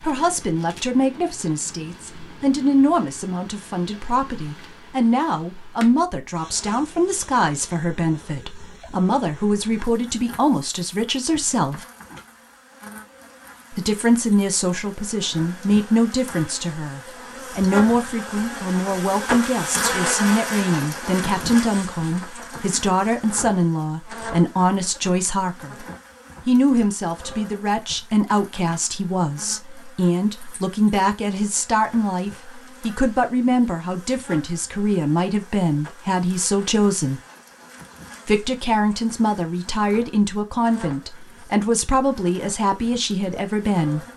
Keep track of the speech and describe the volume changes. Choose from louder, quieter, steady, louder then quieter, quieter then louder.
steady.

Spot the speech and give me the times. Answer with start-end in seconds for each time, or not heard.
0.0-11.8, 13.7-25.9, 26.4-37.2, 38.2-44.0.